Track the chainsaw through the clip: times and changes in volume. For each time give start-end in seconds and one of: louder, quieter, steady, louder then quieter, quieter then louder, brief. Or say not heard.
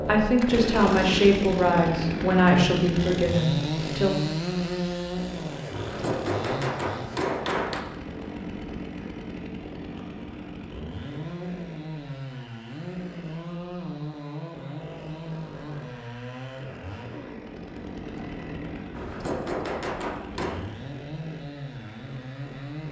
0.0-22.8 quieter.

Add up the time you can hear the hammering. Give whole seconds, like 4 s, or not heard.
4 s.